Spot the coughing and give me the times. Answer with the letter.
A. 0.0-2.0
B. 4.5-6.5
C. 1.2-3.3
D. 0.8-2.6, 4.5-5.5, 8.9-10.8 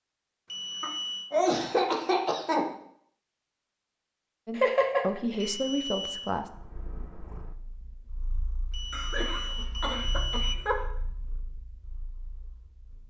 D.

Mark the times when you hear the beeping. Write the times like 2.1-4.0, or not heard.
0.5-1.4, 5.4-6.3, 8.7-10.6.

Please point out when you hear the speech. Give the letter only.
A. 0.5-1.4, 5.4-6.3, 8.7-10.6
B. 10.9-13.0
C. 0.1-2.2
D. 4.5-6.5
D.